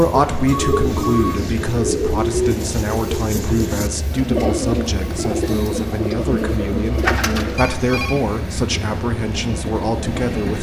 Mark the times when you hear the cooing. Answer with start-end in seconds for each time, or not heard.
0.0-7.6.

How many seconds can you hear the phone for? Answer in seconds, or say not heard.
2 s.